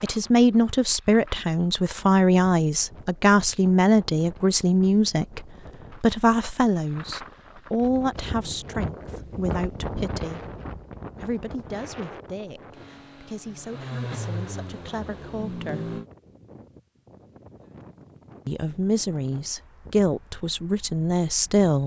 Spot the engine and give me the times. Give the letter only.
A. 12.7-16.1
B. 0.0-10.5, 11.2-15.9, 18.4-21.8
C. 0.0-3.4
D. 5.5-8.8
A.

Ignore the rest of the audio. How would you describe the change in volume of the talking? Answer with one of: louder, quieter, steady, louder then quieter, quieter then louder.
quieter then louder.